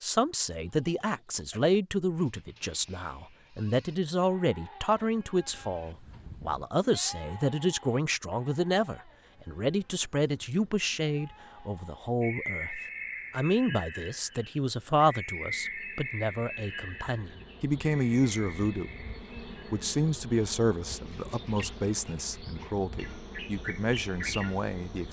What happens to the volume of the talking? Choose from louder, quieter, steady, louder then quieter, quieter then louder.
steady.